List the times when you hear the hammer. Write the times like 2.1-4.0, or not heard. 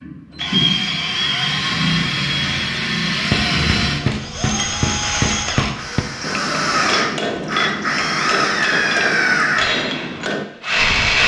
3.1-10.4.